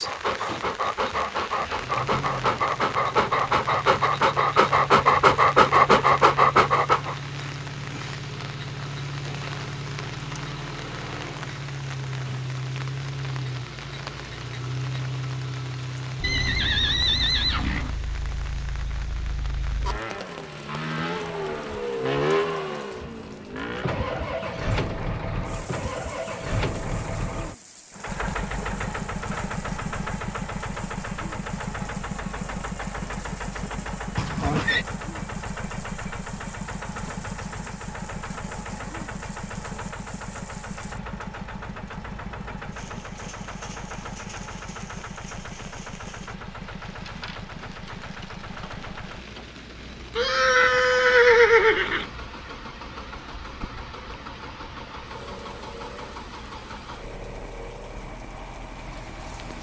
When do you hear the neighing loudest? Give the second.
51 s.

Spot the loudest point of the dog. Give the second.
6 s.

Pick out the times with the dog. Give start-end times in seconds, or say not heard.
0.0-7.2.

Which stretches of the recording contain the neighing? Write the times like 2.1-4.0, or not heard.
16.2-17.9, 34.1-34.9, 50.1-52.0.